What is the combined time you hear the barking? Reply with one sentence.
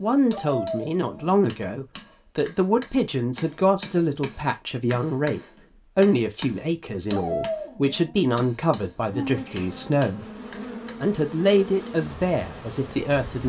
You can hear the barking for 2 seconds altogether.